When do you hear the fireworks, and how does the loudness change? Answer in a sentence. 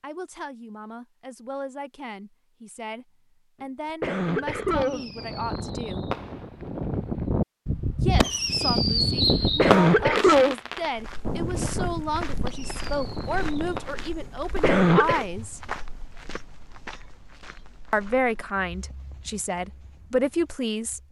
You can hear the fireworks from 4.5 to 14.2 s, getting louder then quieter.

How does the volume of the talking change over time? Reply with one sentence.
The loudness of the talking goes up.